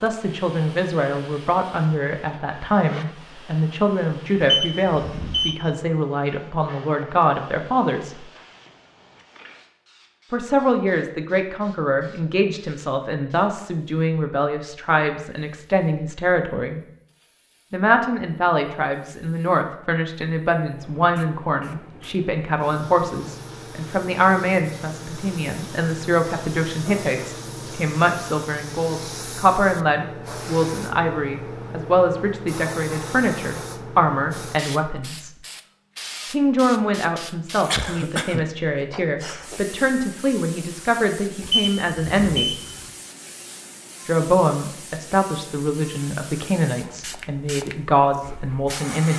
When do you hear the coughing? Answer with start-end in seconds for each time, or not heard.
37.6-38.5.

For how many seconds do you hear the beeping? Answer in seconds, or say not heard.
3 s.